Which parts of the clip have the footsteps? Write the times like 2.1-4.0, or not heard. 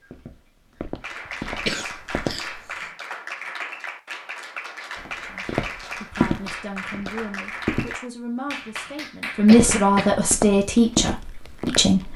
0.0-2.4, 5.0-8.0, 9.6-12.1.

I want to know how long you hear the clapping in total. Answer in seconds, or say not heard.
9 s.